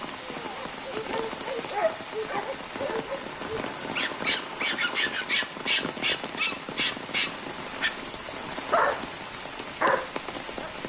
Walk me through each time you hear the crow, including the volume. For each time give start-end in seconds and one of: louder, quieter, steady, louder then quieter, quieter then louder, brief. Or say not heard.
not heard.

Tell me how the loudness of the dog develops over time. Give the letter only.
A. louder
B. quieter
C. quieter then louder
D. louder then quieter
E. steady
A.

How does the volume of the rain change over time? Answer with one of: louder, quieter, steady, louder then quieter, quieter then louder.
steady.